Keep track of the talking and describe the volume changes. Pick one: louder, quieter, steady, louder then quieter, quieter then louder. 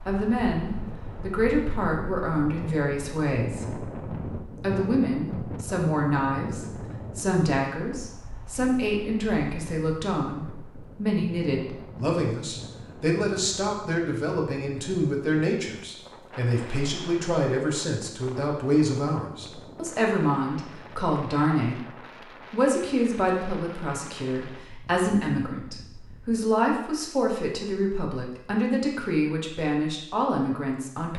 steady.